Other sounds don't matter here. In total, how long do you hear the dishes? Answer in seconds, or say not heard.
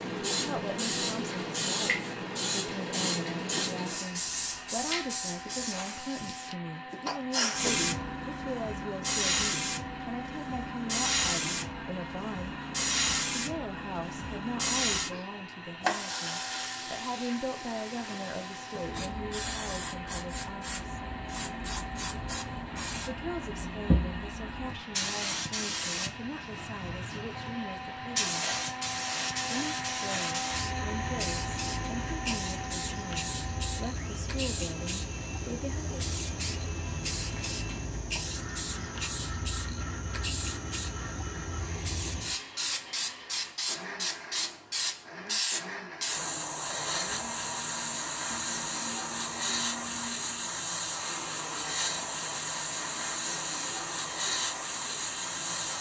not heard.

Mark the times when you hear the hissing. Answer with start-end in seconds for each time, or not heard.
0.0-55.7.